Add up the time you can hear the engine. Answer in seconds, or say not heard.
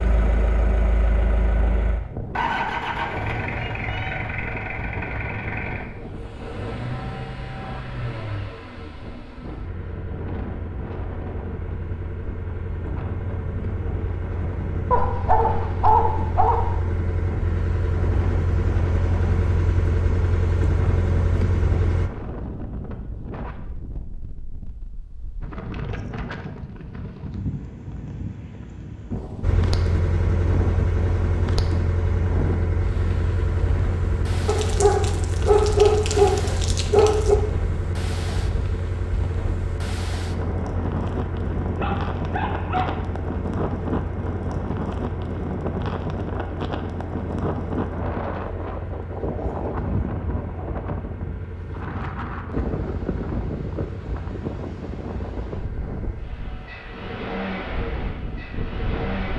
52 s.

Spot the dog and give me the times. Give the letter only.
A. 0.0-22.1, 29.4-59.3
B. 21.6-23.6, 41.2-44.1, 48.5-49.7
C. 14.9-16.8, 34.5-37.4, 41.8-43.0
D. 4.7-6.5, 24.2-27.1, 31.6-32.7
C.